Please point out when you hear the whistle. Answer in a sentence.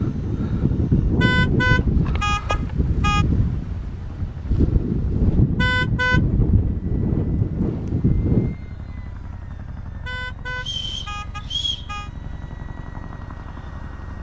You can hear the whistle from 10.6 to 11.9 s.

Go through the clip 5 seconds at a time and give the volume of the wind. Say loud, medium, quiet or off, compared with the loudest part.
loud, loud, off.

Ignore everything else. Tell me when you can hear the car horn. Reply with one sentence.
The car horn can be heard from 1.2 to 3.2 s, from 5.5 to 6.2 s and from 10.1 to 12.1 s.